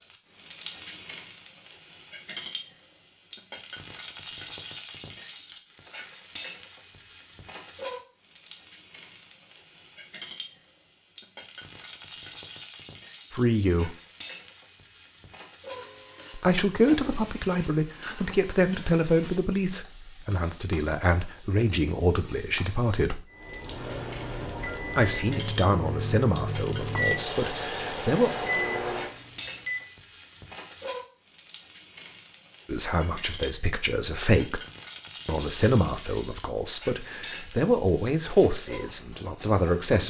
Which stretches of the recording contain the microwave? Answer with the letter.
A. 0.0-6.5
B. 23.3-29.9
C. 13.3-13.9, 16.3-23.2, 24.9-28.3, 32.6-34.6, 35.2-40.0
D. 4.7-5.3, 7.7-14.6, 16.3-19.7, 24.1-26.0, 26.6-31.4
B.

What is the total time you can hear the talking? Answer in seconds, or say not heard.
18 s.